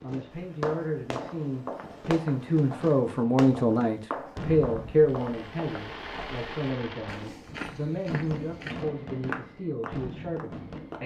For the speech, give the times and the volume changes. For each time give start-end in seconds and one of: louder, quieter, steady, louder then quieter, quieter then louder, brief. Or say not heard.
0.0-11.0 louder then quieter.